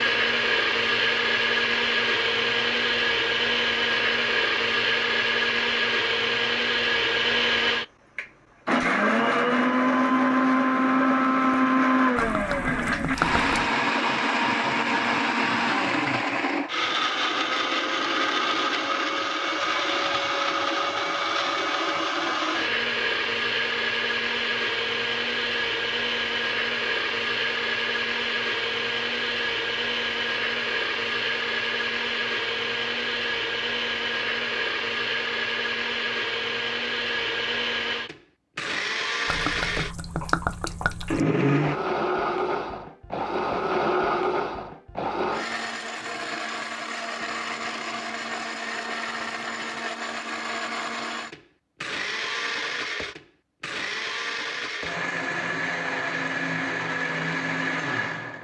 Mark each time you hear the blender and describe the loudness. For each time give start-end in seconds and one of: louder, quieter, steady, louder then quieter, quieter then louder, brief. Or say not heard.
0.0-58.4 quieter.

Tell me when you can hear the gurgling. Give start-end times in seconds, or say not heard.
12.2-13.8, 39.2-41.2.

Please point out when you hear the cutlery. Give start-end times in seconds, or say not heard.
not heard.